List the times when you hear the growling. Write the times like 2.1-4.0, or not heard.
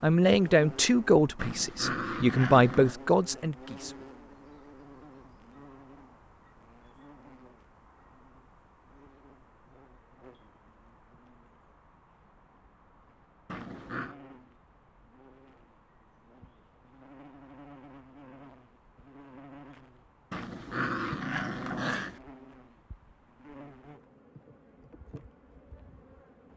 1.4-3.0, 13.4-14.2, 20.3-22.2.